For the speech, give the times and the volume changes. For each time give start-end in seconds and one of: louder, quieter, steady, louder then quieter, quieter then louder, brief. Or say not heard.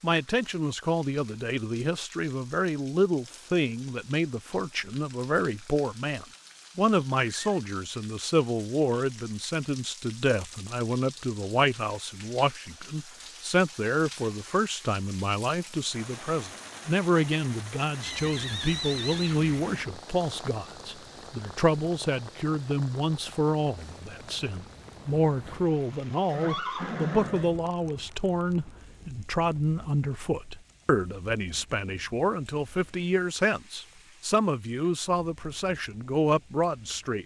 0.0-37.2 steady.